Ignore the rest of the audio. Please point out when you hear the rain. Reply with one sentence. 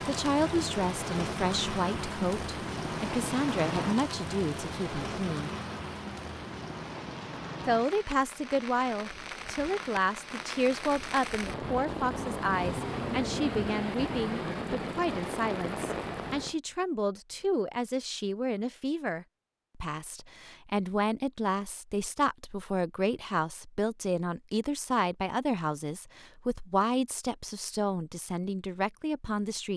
The rain can be heard from 0.0 to 16.6 s.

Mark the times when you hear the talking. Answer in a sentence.
The talking can be heard from 0.0 to 5.5 s and from 7.7 to 29.7 s.